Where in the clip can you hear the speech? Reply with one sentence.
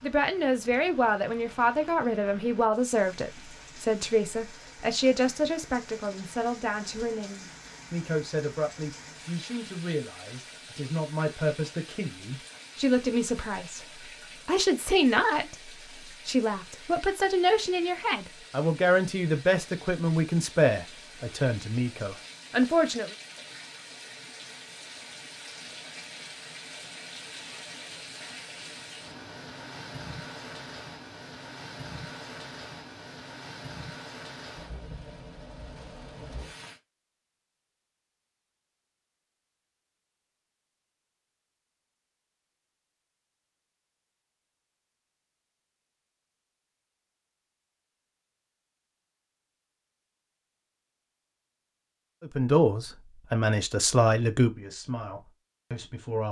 You can hear the speech from 0.0 to 23.1 s and from 52.2 to 56.2 s.